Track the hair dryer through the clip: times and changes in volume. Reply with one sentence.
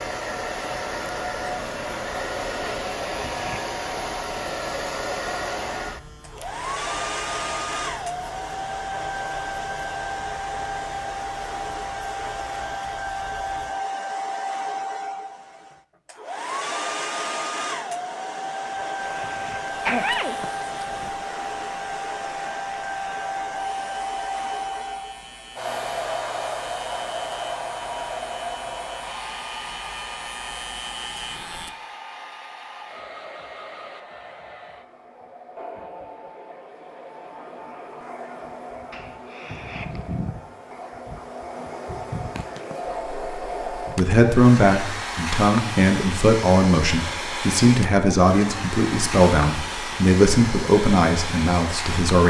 The hair dryer can be heard from 0.0 to 52.2 s, getting quieter then louder.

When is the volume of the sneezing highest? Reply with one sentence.
The loudest moment of the sneezing is at 20 seconds.